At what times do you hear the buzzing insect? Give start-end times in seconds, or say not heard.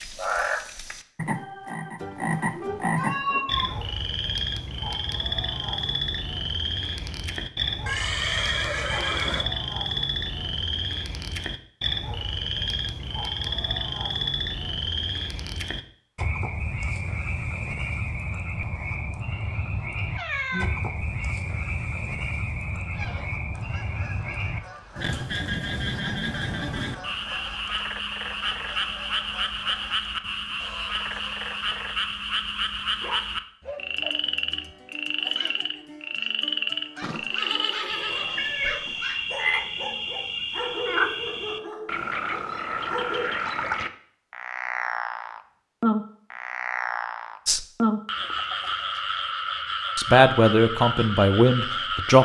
not heard.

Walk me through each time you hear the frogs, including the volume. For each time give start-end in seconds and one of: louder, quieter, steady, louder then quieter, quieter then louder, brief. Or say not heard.
0.0-52.1 steady.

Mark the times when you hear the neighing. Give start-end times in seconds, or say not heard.
7.8-9.4, 37.0-39.1.